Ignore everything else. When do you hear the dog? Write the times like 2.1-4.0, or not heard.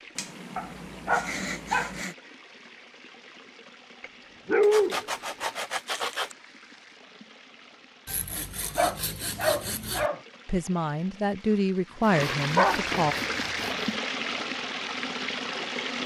0.6-1.9, 4.0-5.5, 8.8-10.2, 12.1-13.4.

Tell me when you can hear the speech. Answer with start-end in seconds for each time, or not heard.
10.4-13.2.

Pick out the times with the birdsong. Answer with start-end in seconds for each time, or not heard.
not heard.